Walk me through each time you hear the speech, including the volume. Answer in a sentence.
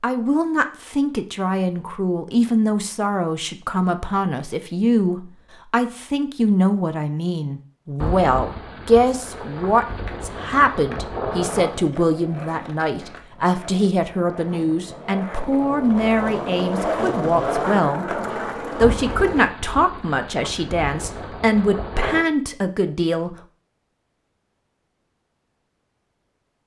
The speech can be heard from 0.0 to 23.4 s, at a steady volume.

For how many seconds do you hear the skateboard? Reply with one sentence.
The skateboard can be heard for 10 seconds in total.